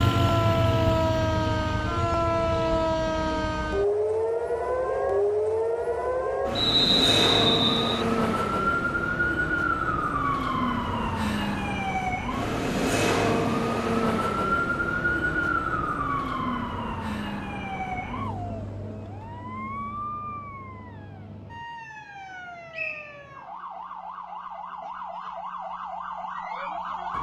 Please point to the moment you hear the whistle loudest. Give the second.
7 s.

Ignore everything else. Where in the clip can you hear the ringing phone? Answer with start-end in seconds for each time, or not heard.
not heard.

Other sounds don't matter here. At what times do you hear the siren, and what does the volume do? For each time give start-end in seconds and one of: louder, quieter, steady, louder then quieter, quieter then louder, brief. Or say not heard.
0.0-27.1 quieter.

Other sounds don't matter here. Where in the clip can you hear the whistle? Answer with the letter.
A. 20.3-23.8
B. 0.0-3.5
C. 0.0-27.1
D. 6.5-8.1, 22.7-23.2
D.